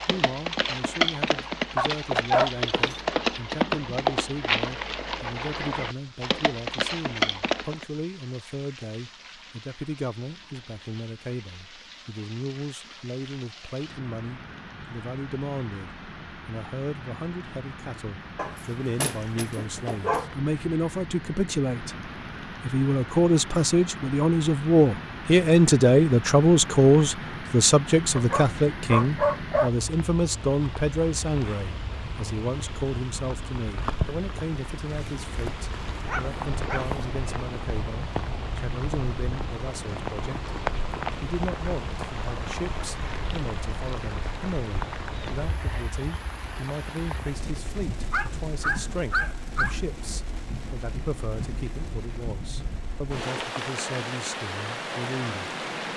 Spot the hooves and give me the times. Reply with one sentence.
The hooves can be heard from 0.0 to 7.8 s.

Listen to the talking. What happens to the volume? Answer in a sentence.
The volume of the talking goes up, then down.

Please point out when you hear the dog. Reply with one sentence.
The dog can be heard from 1.8 to 3.0 s, from 18.4 to 20.2 s, from 28.1 to 29.7 s, from 35.0 to 36.9 s and from 48.1 to 49.8 s.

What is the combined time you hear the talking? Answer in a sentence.
You can hear the talking for 55 seconds altogether.